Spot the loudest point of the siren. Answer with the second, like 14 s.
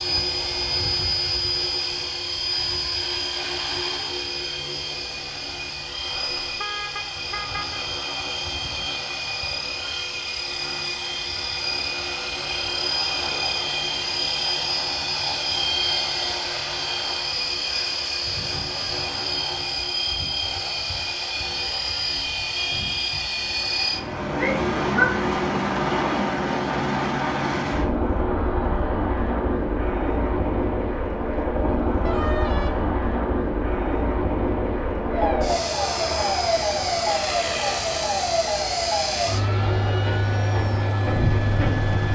37 s.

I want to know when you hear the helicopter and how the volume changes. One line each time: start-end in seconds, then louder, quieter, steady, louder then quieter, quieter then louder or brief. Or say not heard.
0.0-42.0 steady.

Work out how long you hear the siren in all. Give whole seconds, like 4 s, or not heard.
7 s.